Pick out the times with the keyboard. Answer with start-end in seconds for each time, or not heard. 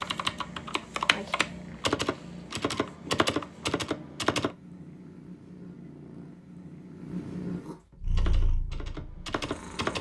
0.0-4.5, 8.1-9.9.